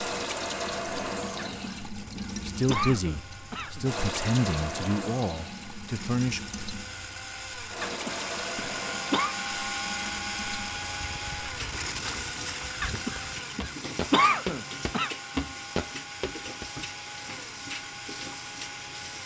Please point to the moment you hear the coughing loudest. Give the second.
14 s.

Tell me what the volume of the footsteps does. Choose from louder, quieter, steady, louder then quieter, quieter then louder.
louder.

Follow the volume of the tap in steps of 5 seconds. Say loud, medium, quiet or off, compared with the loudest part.
loud, medium, medium, medium.